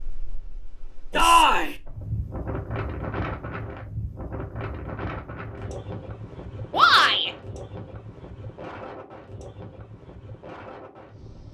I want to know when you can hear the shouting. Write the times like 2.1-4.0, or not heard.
1.1-1.8, 6.7-7.3.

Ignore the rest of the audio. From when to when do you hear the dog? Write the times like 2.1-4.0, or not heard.
not heard.